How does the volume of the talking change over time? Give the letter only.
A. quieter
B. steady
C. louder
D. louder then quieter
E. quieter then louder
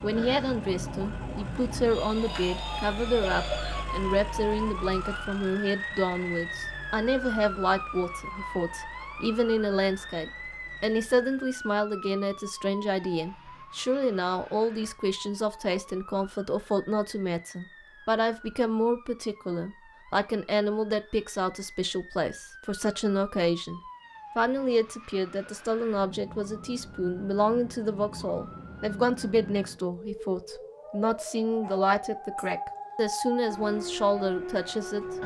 B.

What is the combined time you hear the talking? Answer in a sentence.
You can hear the talking for 35 seconds altogether.